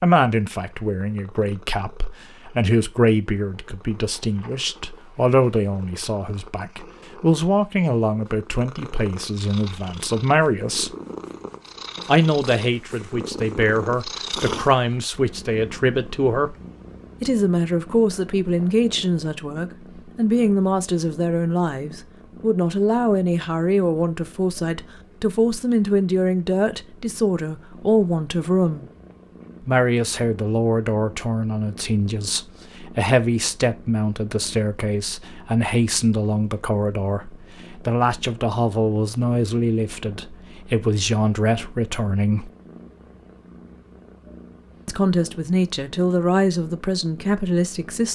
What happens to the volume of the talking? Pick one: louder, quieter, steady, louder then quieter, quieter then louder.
steady.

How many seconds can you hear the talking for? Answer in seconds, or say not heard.
43 s.